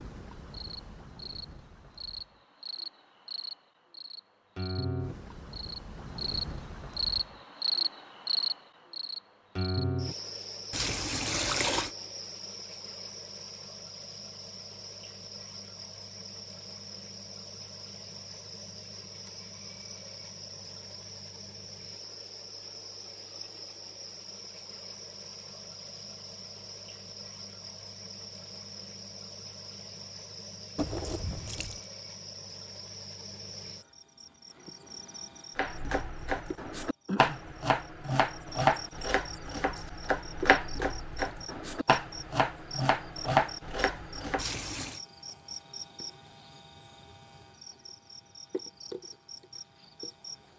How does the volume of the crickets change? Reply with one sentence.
The volume of the crickets goes down.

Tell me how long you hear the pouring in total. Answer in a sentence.
The pouring can be heard for 3 seconds in total.